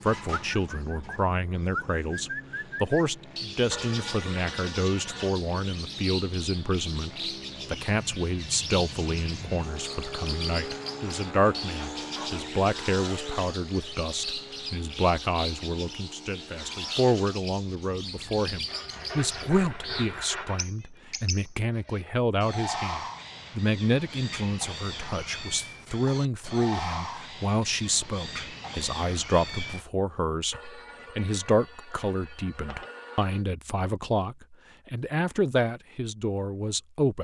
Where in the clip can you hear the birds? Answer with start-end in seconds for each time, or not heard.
0.0-29.9.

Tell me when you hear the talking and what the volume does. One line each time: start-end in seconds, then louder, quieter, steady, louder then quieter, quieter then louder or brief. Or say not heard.
0.0-37.1 steady.